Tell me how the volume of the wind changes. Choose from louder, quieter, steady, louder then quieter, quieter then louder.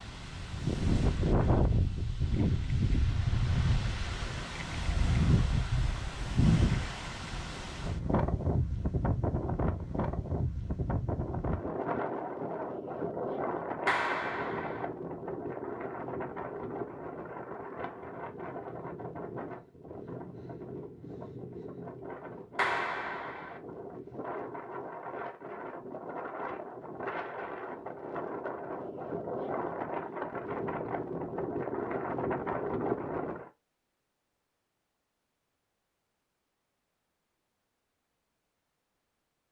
quieter then louder.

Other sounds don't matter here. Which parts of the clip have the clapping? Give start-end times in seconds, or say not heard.
13.8-14.8, 22.6-23.6.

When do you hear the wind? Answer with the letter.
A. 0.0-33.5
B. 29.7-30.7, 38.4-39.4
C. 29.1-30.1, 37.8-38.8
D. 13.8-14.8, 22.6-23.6
A.